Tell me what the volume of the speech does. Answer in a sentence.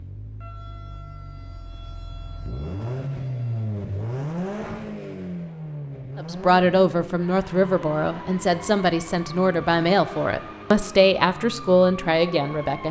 The volume of the speech stays about the same.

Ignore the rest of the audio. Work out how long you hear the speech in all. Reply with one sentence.
The speech can be heard for 7 seconds in total.